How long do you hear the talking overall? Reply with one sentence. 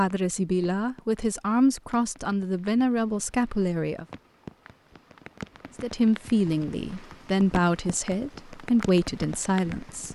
The talking can be heard for 8 seconds in total.